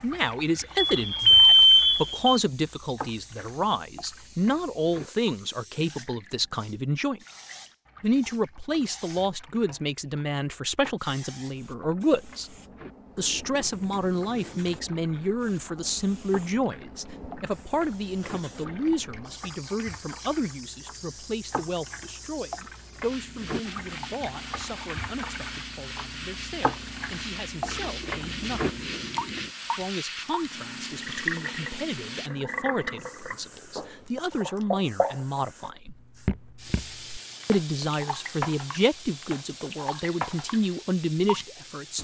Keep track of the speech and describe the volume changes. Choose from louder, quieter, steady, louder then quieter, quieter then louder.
quieter then louder.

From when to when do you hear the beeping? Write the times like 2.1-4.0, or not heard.
0.8-2.4, 33.4-34.6.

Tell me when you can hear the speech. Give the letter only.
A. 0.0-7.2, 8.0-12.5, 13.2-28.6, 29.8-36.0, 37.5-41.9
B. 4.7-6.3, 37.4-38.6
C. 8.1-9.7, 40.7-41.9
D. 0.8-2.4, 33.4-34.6
A.